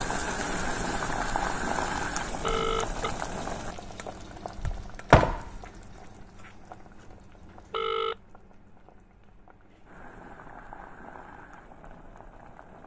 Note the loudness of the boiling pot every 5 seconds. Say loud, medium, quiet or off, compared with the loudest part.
loud, loud, quiet.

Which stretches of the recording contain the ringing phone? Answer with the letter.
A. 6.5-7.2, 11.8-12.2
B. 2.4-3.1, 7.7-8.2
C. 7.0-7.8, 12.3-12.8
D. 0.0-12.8
B.